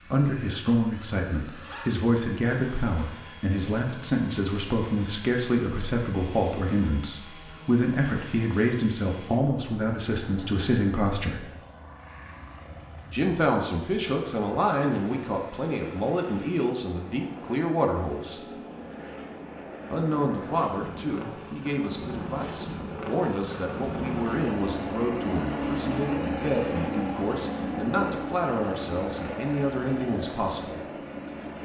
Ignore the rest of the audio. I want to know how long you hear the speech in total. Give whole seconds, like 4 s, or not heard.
28 s.